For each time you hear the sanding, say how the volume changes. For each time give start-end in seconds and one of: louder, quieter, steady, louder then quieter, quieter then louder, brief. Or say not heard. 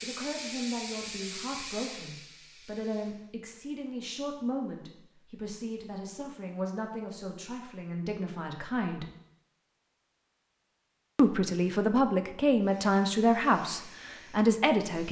not heard.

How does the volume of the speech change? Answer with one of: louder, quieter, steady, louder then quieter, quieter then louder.
louder.